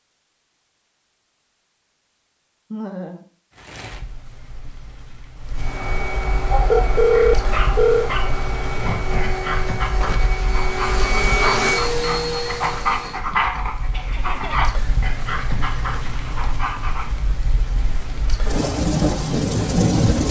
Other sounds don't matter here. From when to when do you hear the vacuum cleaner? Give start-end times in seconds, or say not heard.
5.5-13.2.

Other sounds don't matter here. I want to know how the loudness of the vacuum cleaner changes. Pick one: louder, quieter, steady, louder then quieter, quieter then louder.
louder.